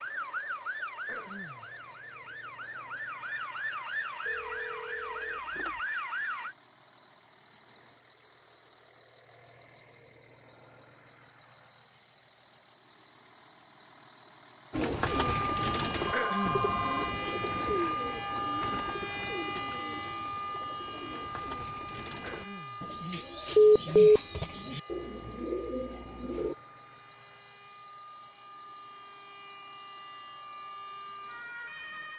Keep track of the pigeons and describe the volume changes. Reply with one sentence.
The volume of the pigeons goes down, then up.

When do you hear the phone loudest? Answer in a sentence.
The loudest moment of the phone is at 24 seconds.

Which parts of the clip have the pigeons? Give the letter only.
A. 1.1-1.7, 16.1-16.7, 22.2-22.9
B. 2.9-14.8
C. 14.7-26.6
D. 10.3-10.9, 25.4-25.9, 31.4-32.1
C.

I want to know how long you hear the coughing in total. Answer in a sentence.
The coughing can be heard for 2 seconds in total.